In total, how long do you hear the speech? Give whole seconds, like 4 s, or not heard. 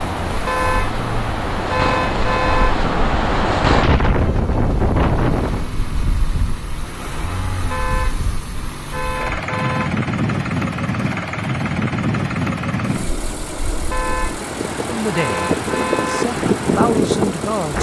3 s.